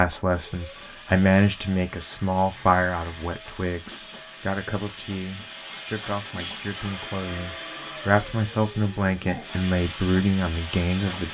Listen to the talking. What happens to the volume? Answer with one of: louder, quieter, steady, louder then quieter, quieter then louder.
quieter then louder.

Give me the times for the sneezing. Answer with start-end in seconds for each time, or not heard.
not heard.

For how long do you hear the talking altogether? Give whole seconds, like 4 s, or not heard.
11 s.